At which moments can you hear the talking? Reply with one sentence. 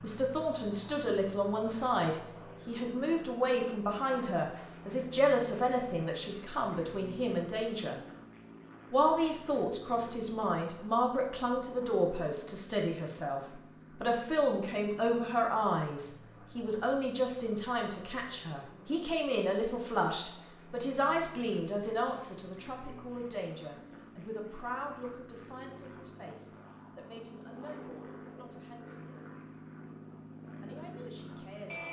The talking can be heard from 0.0 to 8.0 s, from 8.9 to 29.3 s and from 30.6 to 31.8 s.